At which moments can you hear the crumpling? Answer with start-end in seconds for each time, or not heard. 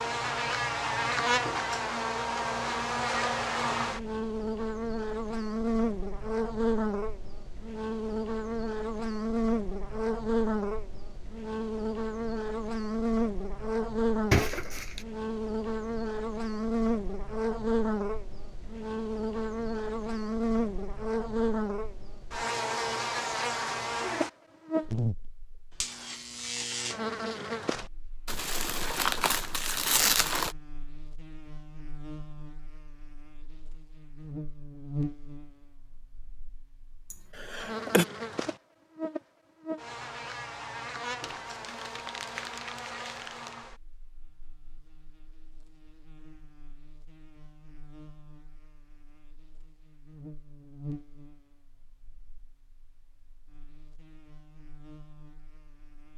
14.3-15.1, 28.2-30.6, 41.2-43.5.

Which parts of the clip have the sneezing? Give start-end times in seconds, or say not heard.
37.1-38.0.